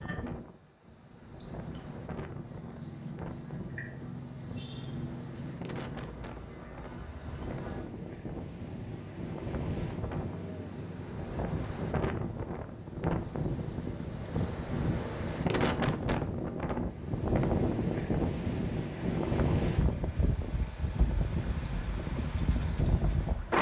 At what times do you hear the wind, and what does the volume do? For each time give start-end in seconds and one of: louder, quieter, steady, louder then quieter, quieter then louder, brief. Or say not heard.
0.0-23.5 louder.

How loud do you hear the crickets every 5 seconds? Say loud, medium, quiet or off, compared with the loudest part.
loud, loud, loud, quiet, quiet.